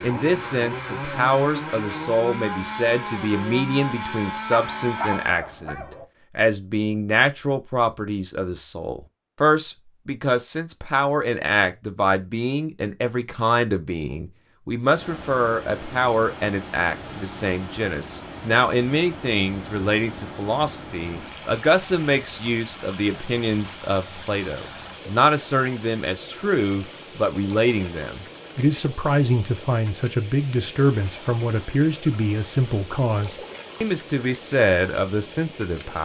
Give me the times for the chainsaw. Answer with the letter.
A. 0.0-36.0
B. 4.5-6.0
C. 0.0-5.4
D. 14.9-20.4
C.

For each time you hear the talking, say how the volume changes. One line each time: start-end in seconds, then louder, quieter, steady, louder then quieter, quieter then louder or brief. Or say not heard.
0.0-36.0 steady.